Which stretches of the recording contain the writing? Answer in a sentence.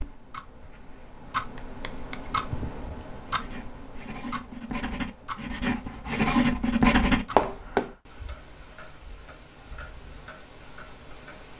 You can hear the writing from 1.6 to 8.0 s.